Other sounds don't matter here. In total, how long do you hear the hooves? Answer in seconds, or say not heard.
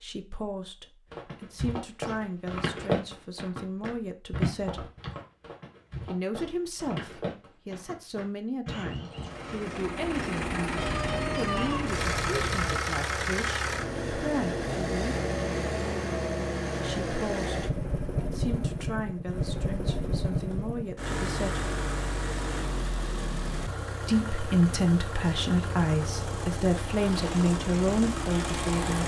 9 s.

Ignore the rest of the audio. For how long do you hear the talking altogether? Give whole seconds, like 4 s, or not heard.
24 s.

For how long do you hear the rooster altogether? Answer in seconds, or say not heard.
2 s.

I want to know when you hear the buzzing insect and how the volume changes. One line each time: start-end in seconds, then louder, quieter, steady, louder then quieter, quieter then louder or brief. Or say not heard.
not heard.